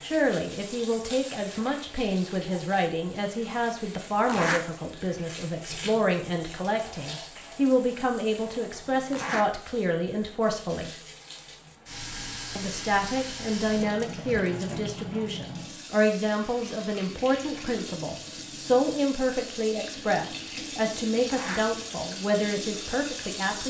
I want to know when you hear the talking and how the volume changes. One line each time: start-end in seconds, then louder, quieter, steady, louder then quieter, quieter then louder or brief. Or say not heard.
0.0-11.0 steady
12.6-23.6 steady.